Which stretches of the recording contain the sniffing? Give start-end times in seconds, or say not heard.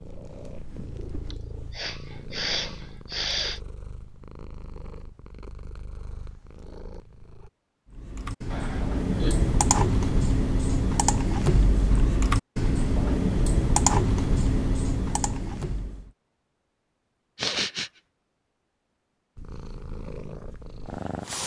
1.3-3.6, 8.5-9.5, 17.4-17.9.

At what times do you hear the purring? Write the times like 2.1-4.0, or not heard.
0.0-7.5, 19.4-21.4.